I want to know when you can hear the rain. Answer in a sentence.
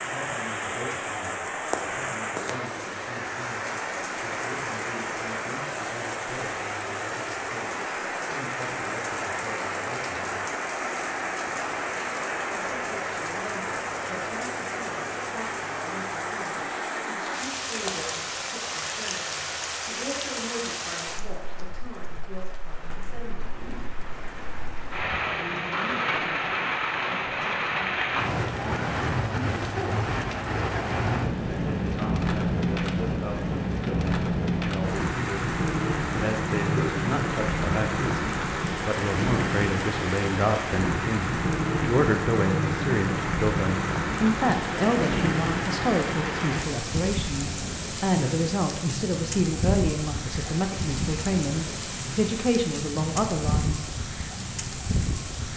You can hear the rain from 0.0 to 55.5 s.